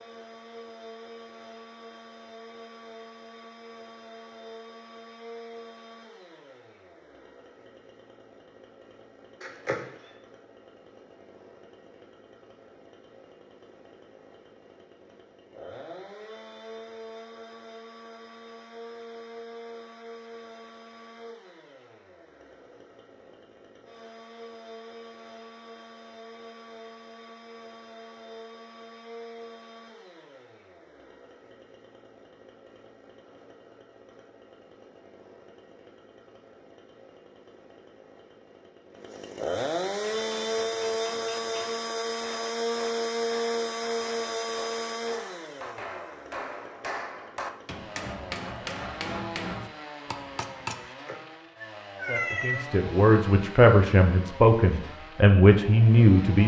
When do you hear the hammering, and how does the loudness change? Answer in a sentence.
The hammering can be heard from 40.0 to 50.9 s, getting louder.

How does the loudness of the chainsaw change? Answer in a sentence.
The volume of the chainsaw goes up, then down.